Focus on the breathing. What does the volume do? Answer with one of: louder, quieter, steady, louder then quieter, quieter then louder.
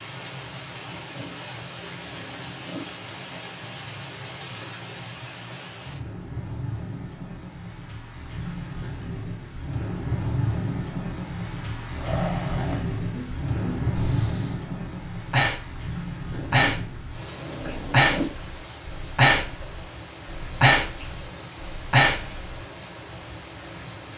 louder.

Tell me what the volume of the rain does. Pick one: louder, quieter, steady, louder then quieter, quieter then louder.
louder then quieter.